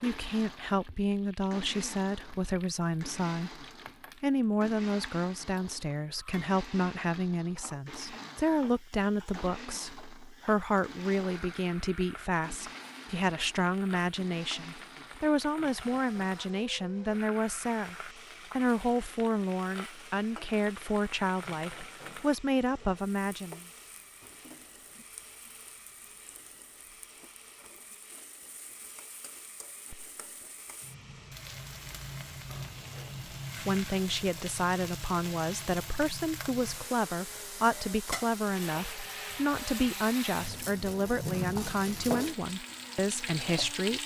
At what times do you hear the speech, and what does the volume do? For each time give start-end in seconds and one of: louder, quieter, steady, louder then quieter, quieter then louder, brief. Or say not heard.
0.0-23.6 steady
33.5-44.0 steady.